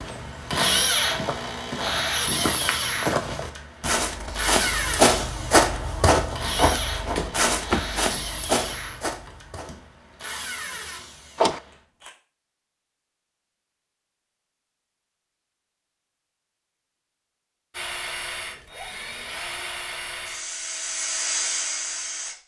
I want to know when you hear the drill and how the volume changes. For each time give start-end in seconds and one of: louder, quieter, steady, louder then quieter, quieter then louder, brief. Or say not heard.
0.0-12.1 quieter
17.7-22.4 louder.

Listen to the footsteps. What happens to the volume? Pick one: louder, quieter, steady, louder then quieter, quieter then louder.
louder then quieter.